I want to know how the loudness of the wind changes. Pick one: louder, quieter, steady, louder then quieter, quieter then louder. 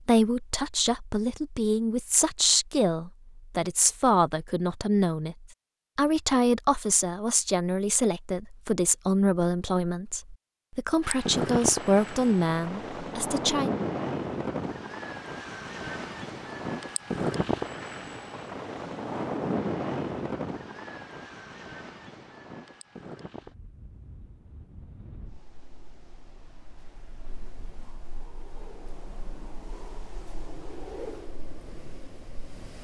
quieter then louder.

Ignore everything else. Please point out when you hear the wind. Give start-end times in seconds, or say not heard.
11.0-32.7.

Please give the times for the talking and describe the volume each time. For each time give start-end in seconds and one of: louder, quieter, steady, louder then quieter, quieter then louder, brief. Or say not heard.
0.0-13.8 steady.